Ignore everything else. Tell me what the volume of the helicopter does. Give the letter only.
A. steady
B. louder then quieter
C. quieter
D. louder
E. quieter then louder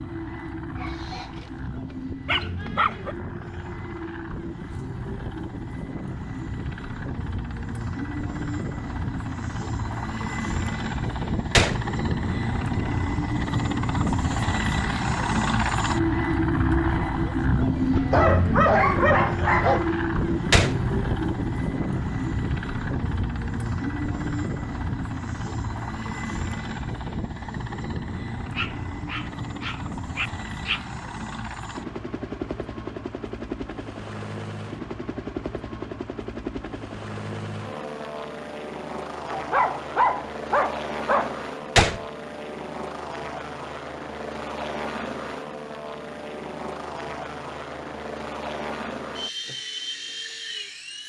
B.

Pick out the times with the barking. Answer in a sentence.
The barking can be heard from 0.8 to 3.1 s, from 17.9 to 19.9 s, from 28.6 to 30.9 s and from 39.3 to 41.9 s.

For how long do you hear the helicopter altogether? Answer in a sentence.
You can hear the helicopter for 51 seconds altogether.